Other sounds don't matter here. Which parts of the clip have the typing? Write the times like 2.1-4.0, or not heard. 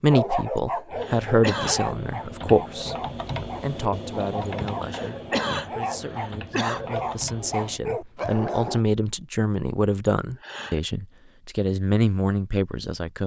0.9-8.3.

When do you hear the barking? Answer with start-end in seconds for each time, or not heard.
0.1-8.8.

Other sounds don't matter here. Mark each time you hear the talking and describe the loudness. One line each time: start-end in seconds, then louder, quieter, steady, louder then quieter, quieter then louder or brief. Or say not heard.
0.0-3.0 brief
3.6-13.2 louder.